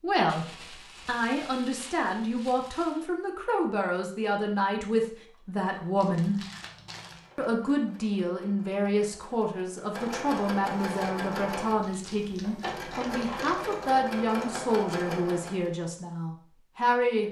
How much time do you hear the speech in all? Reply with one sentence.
The speech can be heard for 16 seconds in total.